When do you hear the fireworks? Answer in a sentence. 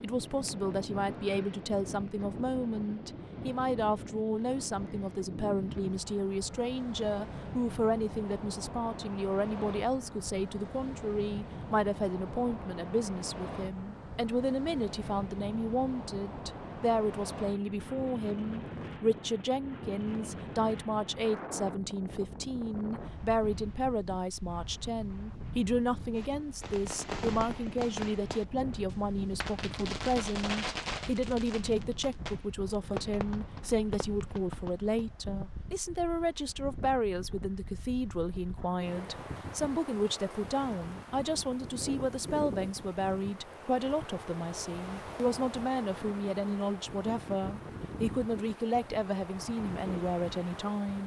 The fireworks can be heard from 26.1 to 35.0 s.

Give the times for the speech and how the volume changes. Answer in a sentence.
The speech can be heard from 0.0 to 51.0 s, at a steady volume.